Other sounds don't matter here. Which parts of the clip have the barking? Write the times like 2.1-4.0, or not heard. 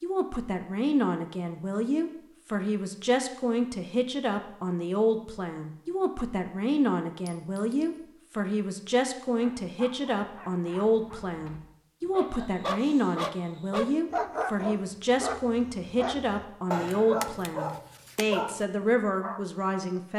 9.2-19.4.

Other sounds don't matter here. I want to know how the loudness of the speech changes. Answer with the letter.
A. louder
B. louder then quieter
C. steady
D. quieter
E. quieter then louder
C.